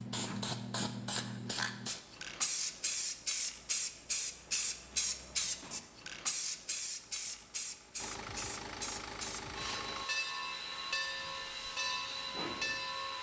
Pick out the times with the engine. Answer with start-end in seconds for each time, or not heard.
7.0-10.1.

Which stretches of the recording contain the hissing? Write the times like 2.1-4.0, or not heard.
0.0-13.1.